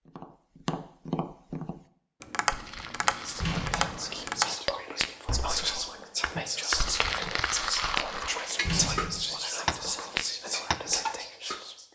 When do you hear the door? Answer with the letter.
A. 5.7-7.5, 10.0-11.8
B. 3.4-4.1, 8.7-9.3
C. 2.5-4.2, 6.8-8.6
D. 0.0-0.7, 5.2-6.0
B.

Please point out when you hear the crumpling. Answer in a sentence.
You can hear the crumpling from 2.5 to 4.2 s and from 6.8 to 8.6 s.